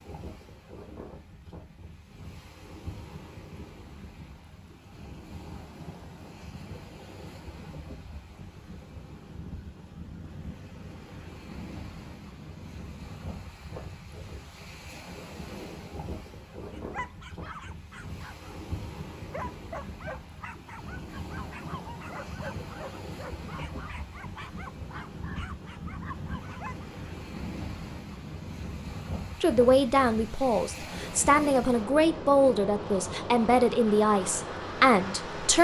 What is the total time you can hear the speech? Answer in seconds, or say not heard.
6 s.